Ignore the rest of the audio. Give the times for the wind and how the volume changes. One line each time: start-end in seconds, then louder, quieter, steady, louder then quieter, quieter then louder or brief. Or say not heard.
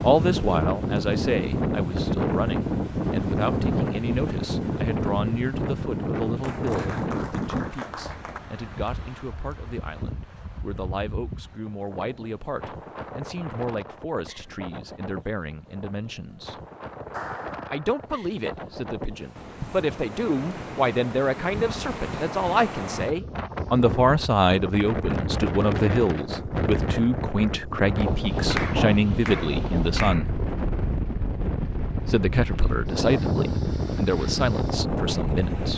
0.0-35.7 quieter then louder.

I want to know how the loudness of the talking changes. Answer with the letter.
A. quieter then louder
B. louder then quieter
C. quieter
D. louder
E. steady
A.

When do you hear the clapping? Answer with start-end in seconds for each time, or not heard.
6.4-8.4, 17.1-18.1, 28.5-30.2.